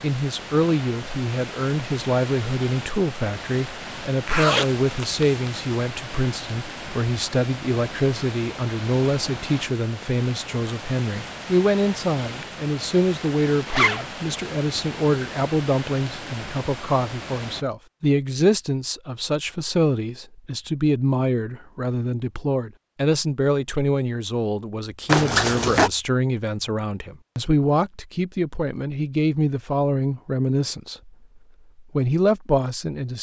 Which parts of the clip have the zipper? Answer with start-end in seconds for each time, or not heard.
4.2-5.6, 13.7-14.1, 25.1-25.9.